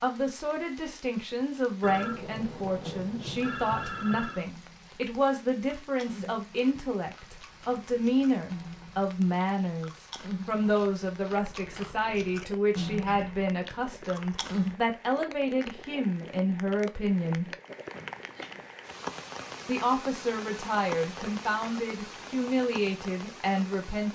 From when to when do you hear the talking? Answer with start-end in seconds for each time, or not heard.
0.0-17.5, 19.6-24.1.